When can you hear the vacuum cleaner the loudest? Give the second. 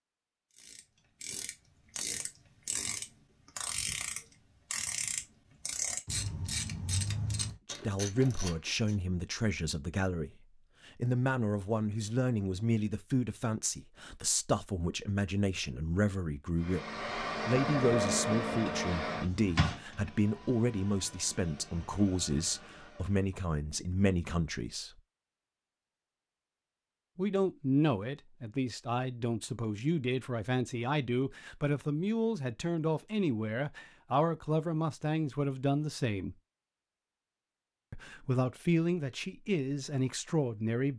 18 s.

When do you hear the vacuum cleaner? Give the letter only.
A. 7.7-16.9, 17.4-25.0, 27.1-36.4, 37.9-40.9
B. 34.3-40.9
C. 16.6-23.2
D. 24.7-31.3
C.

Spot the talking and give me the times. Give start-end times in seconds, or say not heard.
7.7-16.9, 17.4-25.0, 27.1-36.4, 37.9-40.9.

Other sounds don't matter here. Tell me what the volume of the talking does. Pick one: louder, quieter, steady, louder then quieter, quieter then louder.
steady.